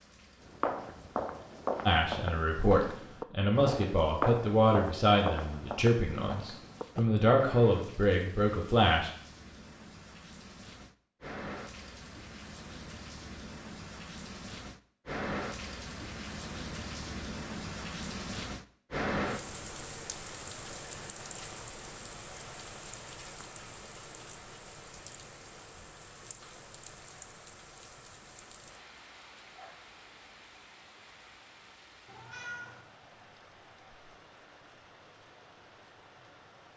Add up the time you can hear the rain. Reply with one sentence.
The rain can be heard for 37 seconds in total.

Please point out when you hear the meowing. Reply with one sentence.
You can hear the meowing from 32.0 to 32.9 s.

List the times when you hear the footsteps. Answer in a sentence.
The footsteps can be heard from 0.4 to 7.2 s.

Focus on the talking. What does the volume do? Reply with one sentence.
The volume of the talking stays about the same.